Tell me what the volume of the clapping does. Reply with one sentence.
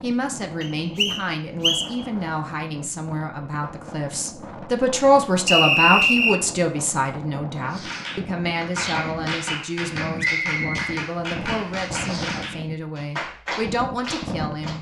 The loudness of the clapping stays about the same.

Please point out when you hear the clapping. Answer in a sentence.
The clapping can be heard from 7.6 to 14.7 s.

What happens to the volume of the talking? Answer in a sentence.
The volume of the talking goes up, then down.